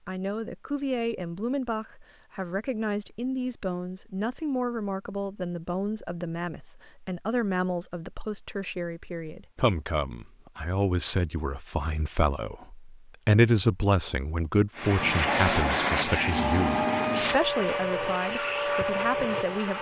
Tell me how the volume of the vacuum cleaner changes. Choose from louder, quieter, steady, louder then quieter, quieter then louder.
steady.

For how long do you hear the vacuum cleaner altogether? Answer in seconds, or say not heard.
5 s.